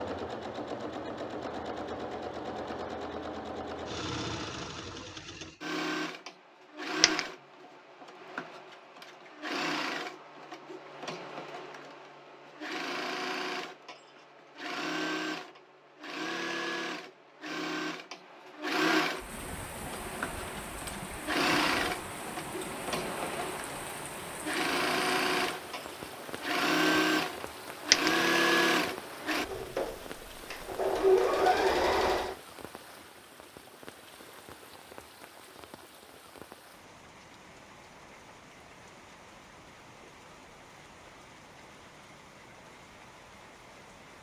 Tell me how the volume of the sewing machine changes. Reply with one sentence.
The loudness of the sewing machine goes up.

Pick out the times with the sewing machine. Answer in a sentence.
The sewing machine can be heard from 0.0 to 32.4 s.